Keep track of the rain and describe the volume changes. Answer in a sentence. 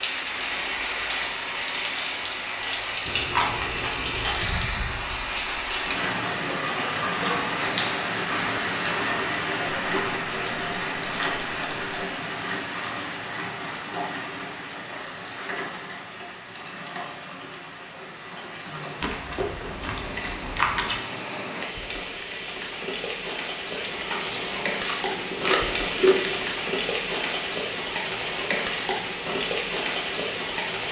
The volume of the rain goes down, then up.